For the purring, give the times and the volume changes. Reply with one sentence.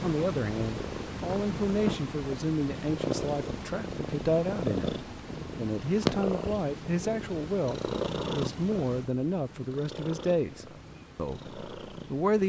You can hear the purring from 0.0 to 12.4 s, getting quieter.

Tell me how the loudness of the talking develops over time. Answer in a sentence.
The loudness of the talking stays about the same.